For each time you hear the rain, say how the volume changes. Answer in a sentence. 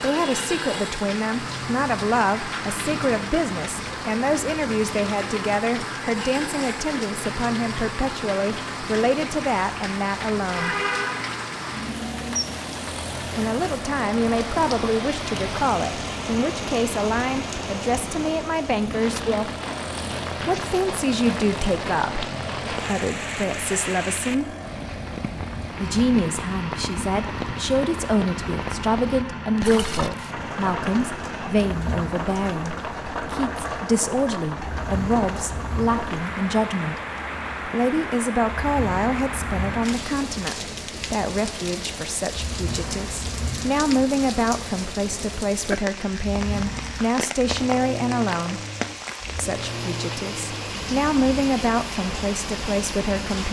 You can hear the rain from 0.0 to 53.4 s, at a steady volume.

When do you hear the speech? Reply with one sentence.
The speech can be heard from 0.0 to 10.8 s, from 13.3 to 19.6 s, from 20.4 to 24.6 s, from 25.8 to 37.0 s, from 37.6 to 48.6 s and from 49.4 to 53.4 s.